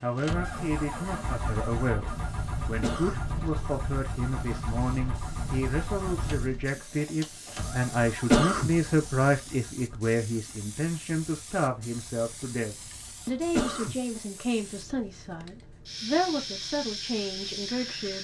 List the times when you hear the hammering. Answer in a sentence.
The hammering can't be heard in this clip.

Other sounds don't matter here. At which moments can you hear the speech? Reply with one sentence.
You can hear the speech from 0.0 to 18.1 s.